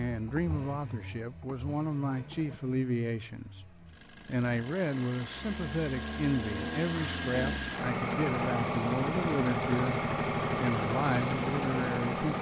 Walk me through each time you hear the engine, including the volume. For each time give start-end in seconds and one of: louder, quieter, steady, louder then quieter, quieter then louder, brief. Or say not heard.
0.0-12.3 louder.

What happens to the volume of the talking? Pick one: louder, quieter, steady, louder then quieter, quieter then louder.
steady.